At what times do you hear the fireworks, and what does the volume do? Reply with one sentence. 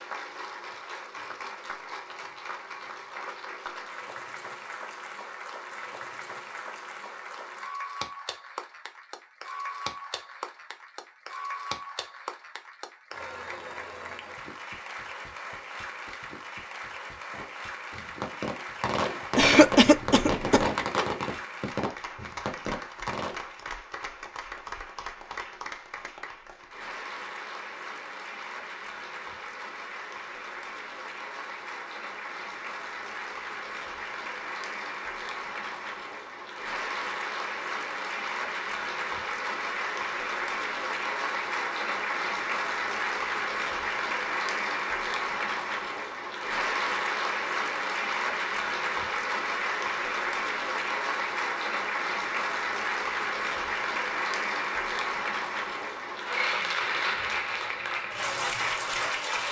You can hear the fireworks from 17.3 to 23.4 s, getting louder then quieter.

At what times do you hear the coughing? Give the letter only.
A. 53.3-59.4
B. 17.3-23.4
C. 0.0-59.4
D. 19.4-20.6
D.